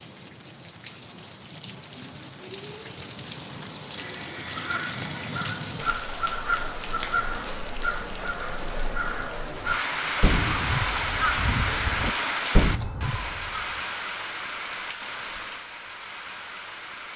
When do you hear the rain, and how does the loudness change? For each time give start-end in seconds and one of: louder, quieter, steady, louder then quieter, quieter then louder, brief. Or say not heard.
0.0-17.1 louder then quieter.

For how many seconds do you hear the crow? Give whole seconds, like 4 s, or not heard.
9 s.